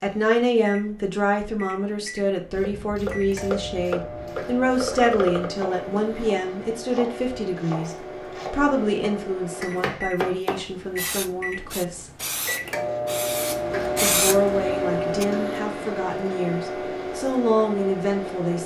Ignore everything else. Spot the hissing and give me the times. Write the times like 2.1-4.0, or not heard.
10.6-15.2.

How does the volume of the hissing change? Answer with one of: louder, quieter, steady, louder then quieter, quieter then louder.
louder.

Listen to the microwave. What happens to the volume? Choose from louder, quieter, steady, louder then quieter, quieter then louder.
louder.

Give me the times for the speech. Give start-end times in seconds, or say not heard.
0.0-12.1, 14.0-18.6.